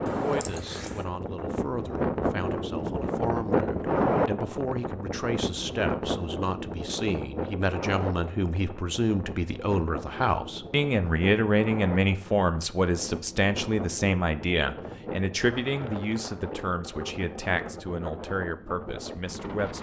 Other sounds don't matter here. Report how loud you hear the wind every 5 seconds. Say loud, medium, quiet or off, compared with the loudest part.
loud, medium, medium, medium.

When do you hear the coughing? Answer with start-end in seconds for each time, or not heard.
0.1-1.1.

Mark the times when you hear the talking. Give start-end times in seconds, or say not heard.
0.0-19.7.